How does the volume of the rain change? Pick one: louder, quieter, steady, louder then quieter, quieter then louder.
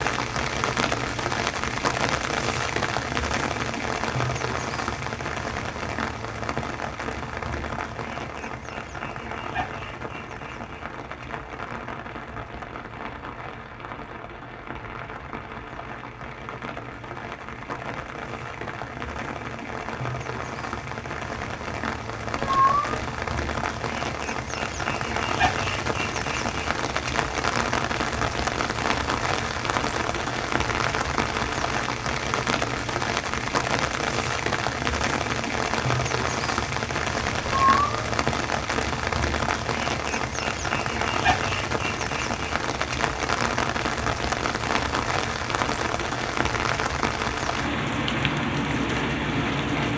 quieter then louder.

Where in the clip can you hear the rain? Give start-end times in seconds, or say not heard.
0.0-49.9.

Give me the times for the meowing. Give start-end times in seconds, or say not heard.
22.4-23.1, 37.4-38.0.